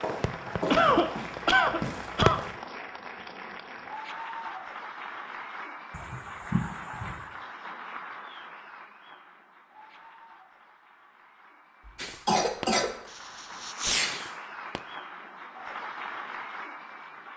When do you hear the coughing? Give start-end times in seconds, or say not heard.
0.7-2.4, 5.9-7.2, 11.8-12.9.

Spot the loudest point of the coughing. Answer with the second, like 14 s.
1 s.